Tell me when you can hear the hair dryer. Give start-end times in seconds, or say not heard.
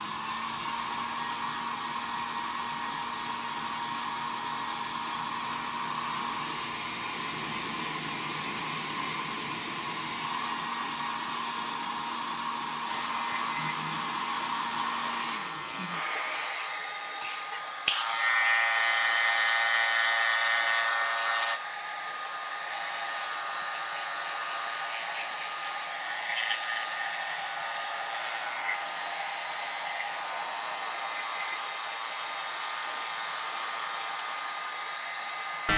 0.0-35.7.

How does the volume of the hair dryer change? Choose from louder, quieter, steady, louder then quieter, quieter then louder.
steady.